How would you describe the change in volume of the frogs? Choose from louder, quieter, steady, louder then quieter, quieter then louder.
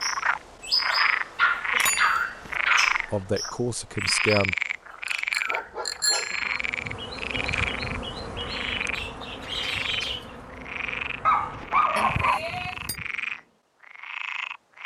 quieter.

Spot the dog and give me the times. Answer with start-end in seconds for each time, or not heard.
0.9-3.1, 5.5-6.5, 11.2-12.4.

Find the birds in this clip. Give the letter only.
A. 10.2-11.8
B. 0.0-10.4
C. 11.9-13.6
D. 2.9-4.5
B.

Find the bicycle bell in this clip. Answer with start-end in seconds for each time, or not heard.
1.7-2.5, 5.0-6.6, 11.9-13.0.